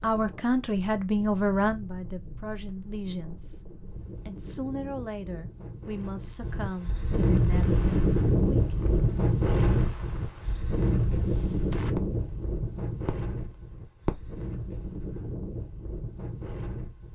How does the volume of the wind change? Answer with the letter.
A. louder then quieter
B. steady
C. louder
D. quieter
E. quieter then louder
A.